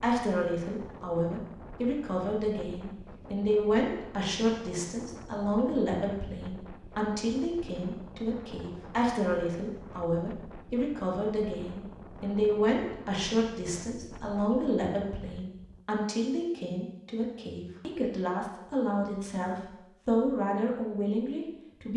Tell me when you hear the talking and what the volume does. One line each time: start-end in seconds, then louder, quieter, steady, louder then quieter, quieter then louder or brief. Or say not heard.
0.0-21.9 steady.